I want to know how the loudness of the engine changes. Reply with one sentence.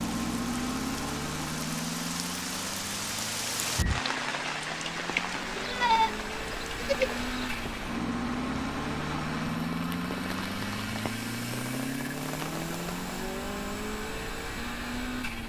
The loudness of the engine goes down, then up.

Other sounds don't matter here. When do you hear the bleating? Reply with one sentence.
You can hear the bleating from 5.5 to 7.7 s.